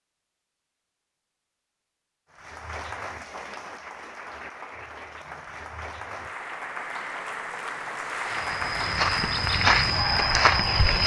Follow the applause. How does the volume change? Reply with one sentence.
The volume of the applause goes up.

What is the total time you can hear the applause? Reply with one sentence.
The applause can be heard for 9 seconds in total.